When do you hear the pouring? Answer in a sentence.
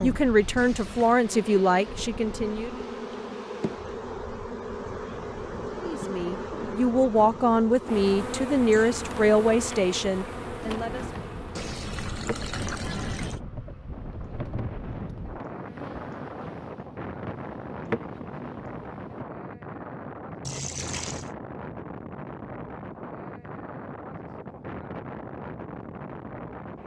You can hear the pouring from 0.6 to 1.2 s, from 11.6 to 13.4 s and from 20.4 to 21.4 s.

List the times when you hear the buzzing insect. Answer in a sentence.
The buzzing insect can be heard from 0.0 to 19.2 s.